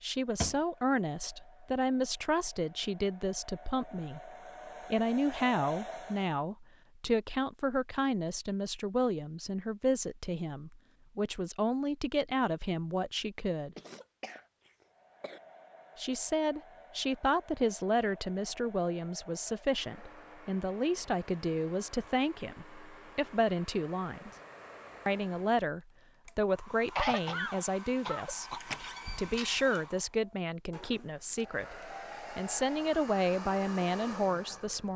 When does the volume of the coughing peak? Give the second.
27 s.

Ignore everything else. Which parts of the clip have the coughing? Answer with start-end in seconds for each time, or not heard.
13.8-15.4, 26.9-28.6.